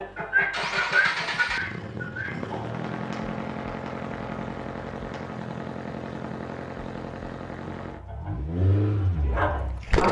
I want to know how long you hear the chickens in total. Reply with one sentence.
You can hear the chickens for 5 seconds altogether.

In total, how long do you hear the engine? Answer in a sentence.
You can hear the engine for 10 seconds altogether.